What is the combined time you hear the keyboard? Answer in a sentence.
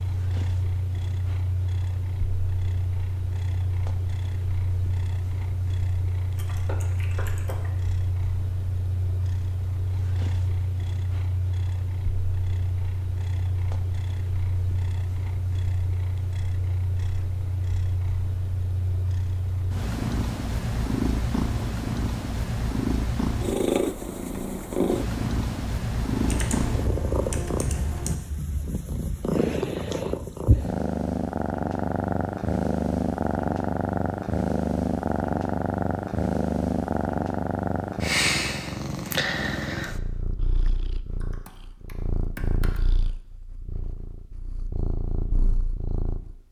You can hear the keyboard for 5 seconds altogether.